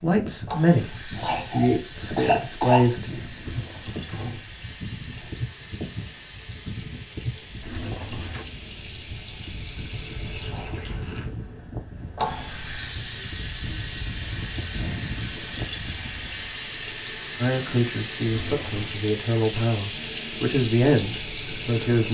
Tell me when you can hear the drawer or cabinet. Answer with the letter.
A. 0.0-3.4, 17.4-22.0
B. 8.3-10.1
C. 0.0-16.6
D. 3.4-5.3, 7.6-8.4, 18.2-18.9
D.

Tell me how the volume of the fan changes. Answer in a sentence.
The loudness of the fan stays about the same.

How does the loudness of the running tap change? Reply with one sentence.
The loudness of the running tap goes up.